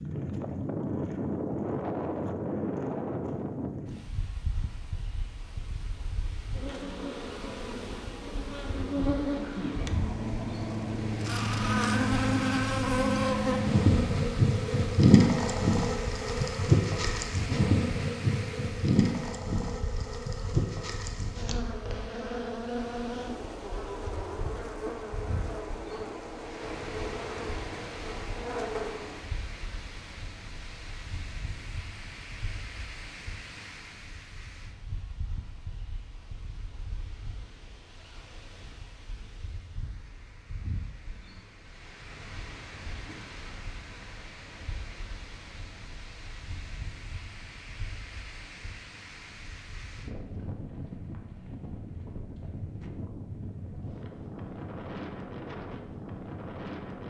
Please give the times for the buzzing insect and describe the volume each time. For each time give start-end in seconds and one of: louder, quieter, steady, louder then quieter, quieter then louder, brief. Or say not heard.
6.5-29.2 louder then quieter.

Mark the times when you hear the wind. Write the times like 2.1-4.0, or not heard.
0.0-57.0.